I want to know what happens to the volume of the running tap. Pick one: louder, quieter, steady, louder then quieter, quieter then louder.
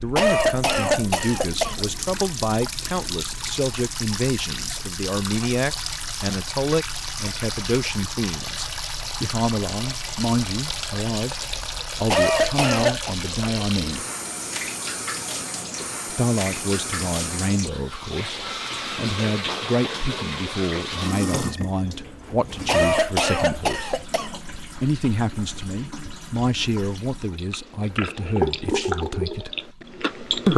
steady.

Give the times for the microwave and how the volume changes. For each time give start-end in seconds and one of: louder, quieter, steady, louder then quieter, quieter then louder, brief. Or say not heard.
not heard.